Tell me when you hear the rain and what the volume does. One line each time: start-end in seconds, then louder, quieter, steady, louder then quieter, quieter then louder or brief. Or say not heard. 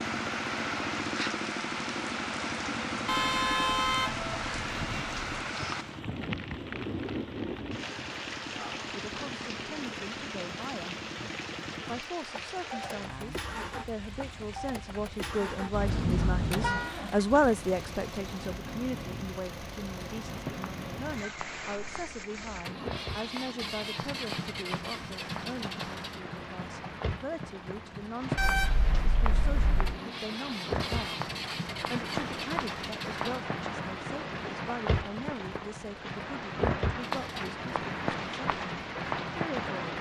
0.0-39.9 quieter then louder.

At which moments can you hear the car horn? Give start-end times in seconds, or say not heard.
3.0-5.4, 15.7-16.9, 28.4-30.0.